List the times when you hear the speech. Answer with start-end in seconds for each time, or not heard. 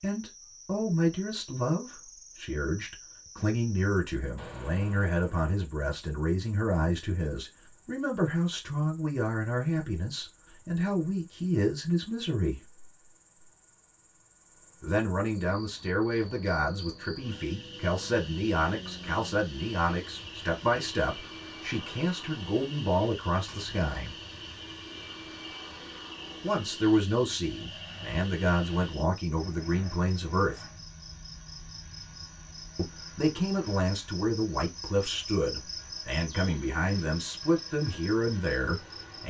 0.0-12.6, 14.8-24.1, 26.4-30.6, 32.8-39.2.